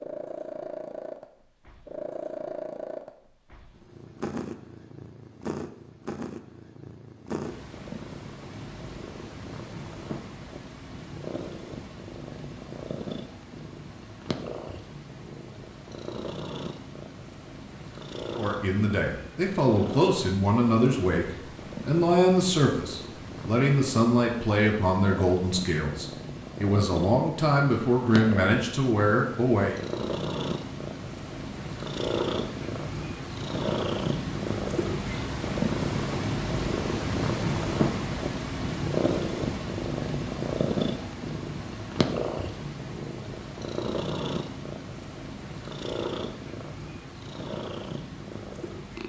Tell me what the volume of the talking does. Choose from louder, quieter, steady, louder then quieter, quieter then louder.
steady.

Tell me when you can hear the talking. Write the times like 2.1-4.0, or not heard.
18.4-29.8.